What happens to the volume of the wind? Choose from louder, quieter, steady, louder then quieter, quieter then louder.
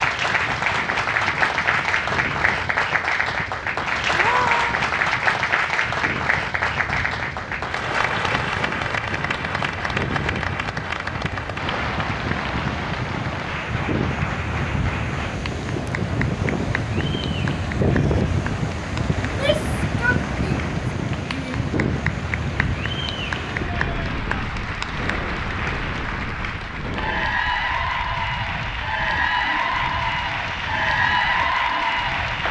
louder then quieter.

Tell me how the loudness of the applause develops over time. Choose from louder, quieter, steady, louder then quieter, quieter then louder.
quieter then louder.